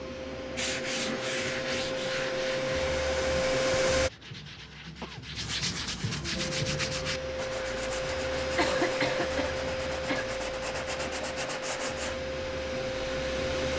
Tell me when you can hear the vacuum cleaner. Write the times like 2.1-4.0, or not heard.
0.0-4.1, 6.3-13.7.